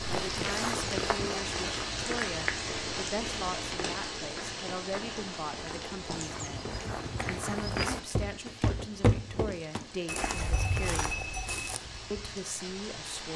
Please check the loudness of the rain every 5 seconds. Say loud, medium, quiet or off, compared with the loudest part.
loud, medium, medium.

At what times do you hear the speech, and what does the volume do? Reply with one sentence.
You can hear the speech from 0.1 to 11.2 s, at a steady volume; and briefly from 12.1 to 13.3 s.